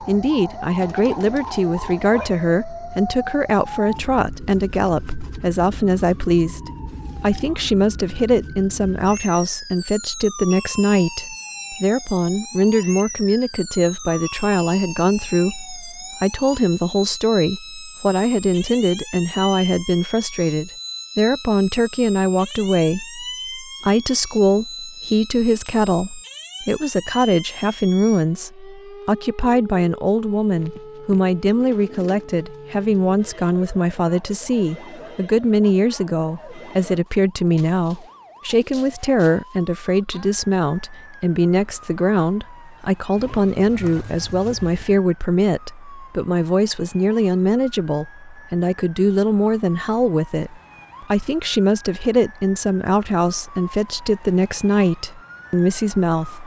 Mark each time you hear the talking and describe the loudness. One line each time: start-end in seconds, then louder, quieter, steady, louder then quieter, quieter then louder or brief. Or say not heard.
0.0-56.4 steady.